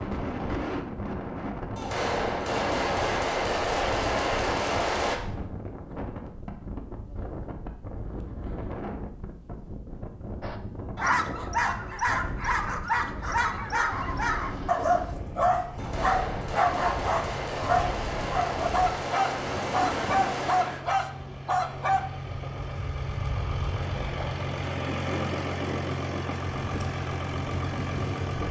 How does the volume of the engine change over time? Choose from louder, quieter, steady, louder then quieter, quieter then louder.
louder.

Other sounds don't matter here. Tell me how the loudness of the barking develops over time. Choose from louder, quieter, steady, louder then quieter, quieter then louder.
steady.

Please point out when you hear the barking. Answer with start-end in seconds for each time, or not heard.
10.4-22.1.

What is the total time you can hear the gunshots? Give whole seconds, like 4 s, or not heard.
8 s.